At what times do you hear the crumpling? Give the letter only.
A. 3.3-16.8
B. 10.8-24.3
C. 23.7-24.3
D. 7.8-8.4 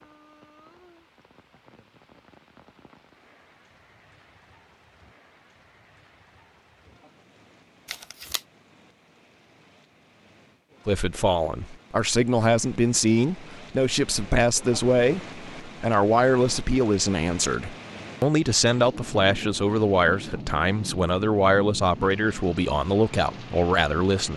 D.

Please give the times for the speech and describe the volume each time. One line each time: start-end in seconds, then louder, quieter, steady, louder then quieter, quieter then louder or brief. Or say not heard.
10.8-24.3 steady.